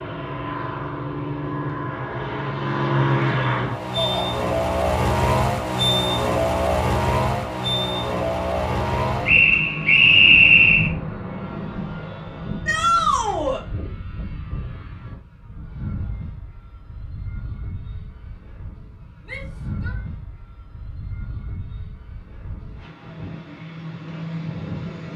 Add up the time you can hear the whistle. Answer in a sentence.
The whistle can be heard for 2 seconds in total.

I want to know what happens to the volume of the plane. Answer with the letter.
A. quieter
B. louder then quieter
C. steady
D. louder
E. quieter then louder
A.